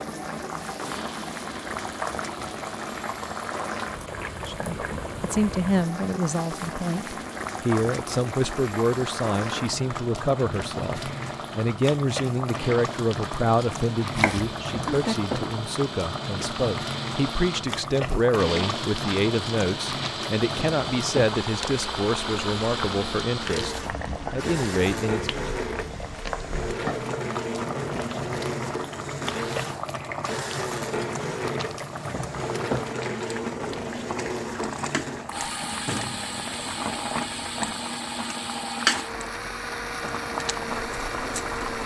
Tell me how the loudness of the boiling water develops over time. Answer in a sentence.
The volume of the boiling water stays about the same.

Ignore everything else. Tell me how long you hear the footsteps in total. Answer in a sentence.
The footsteps can't be heard in this clip.